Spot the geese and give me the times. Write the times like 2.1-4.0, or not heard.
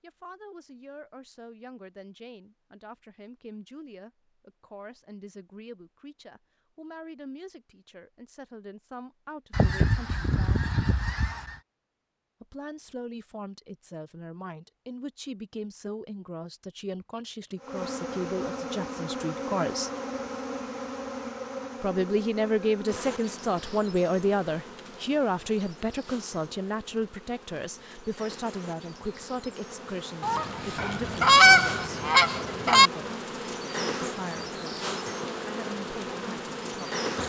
9.5-11.6, 30.2-32.9.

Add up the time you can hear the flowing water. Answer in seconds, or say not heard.
not heard.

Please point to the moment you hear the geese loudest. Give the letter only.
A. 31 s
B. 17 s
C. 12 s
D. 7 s
A.